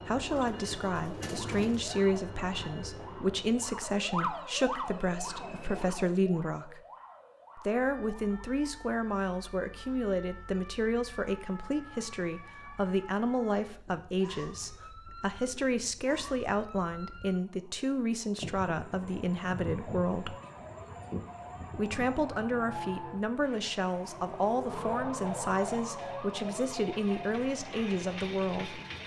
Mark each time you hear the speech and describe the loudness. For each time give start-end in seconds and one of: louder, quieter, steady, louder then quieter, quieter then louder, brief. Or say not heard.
0.1-6.8 steady
7.5-20.4 steady
21.8-28.8 steady.